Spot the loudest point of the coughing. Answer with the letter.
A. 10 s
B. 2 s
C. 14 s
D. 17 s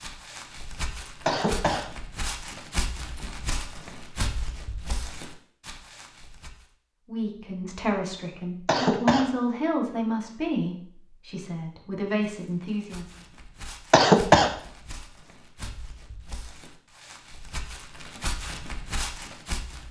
C.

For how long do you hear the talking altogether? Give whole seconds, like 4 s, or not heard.
6 s.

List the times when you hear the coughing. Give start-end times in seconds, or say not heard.
1.2-1.9, 8.7-9.2, 13.9-14.5.